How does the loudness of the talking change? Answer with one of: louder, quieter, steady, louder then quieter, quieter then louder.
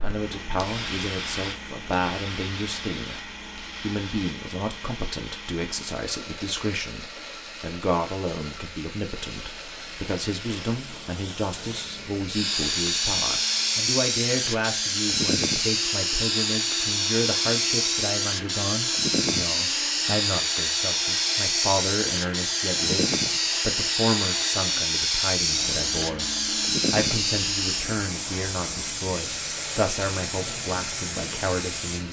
steady.